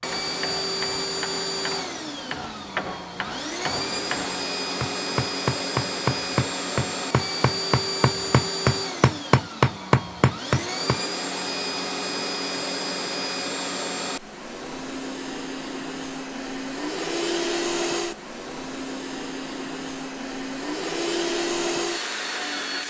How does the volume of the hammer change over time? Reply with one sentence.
The volume of the hammer goes up.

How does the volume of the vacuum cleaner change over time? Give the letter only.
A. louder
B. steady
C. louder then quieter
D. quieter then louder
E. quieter
B.